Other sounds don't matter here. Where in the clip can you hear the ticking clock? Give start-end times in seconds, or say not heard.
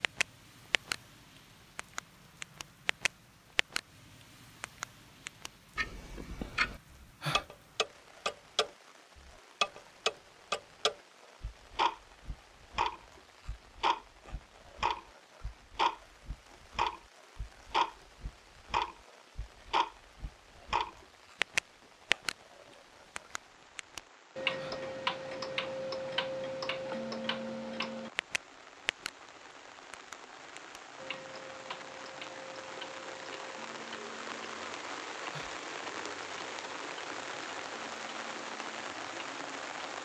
0.0-0.9, 1.8-3.8, 4.6-22.4, 23.1-29.1, 29.9-39.8.